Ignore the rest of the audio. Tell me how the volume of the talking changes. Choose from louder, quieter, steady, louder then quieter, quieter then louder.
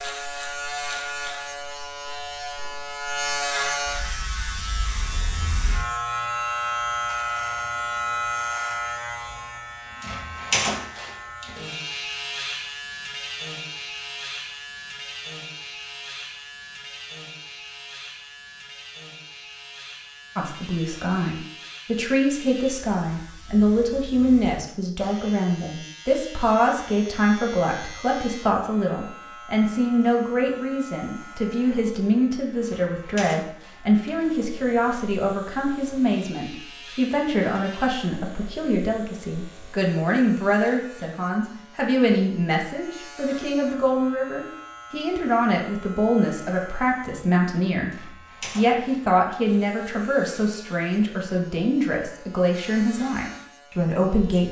steady.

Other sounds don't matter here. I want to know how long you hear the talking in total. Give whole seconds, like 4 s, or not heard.
34 s.